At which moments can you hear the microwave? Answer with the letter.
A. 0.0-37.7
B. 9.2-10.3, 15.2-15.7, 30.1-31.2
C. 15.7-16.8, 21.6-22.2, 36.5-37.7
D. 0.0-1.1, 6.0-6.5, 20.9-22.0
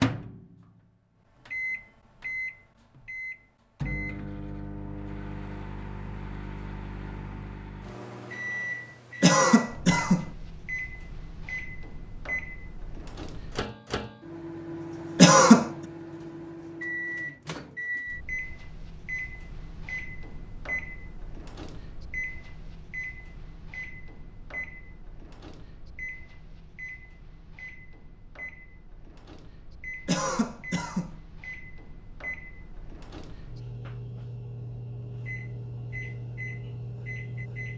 A.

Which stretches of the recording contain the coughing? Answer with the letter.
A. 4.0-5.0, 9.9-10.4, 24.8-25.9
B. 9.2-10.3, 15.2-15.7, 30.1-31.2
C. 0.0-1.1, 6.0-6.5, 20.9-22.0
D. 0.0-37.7
B.